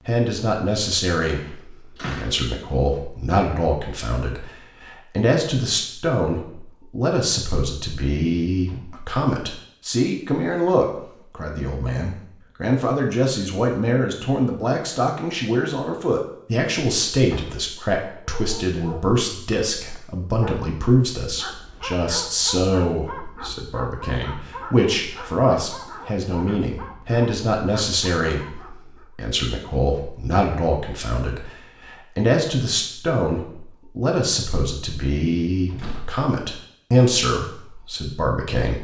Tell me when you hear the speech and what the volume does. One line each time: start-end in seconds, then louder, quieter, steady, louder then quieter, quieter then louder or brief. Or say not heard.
0.1-38.7 steady.